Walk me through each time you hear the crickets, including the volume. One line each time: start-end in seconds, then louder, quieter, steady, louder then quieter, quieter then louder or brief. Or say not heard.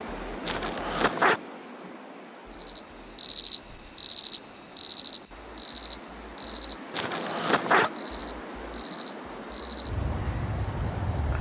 2.5-11.3 quieter.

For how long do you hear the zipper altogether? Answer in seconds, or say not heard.
2 s.